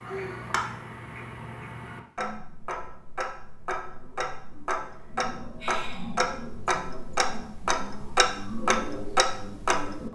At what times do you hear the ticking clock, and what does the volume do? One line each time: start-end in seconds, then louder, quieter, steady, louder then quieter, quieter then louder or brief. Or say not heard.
0.0-10.1 louder.